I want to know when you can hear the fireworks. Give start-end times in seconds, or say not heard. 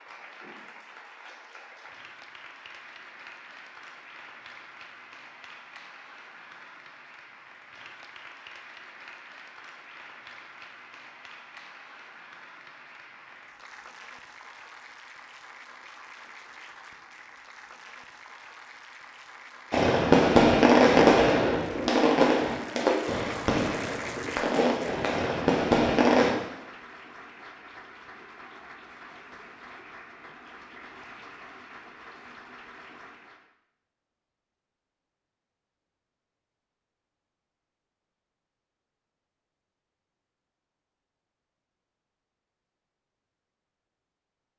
19.7-26.3.